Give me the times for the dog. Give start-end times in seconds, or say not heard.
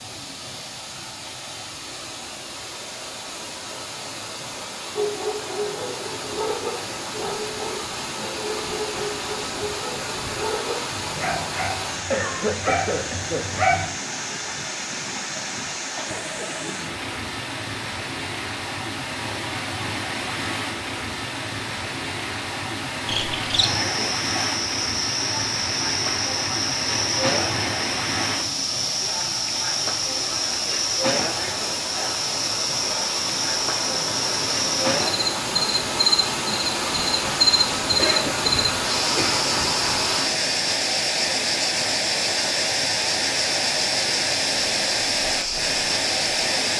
5.0-13.9.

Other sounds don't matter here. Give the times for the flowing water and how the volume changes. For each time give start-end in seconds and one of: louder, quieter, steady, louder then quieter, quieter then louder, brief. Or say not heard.
0.0-46.7 louder.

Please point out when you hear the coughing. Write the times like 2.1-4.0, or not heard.
12.1-13.4, 15.9-16.8, 38.0-39.5.